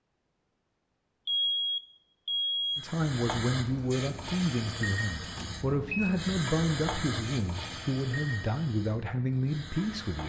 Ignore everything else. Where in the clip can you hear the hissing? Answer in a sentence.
You can hear the hissing from 2.8 to 10.2 s.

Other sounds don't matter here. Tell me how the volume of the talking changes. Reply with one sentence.
The volume of the talking stays about the same.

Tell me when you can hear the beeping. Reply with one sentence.
The beeping can be heard from 1.2 to 2.9 s and from 5.2 to 6.2 s.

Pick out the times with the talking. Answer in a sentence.
The talking can be heard from 2.8 to 10.2 s.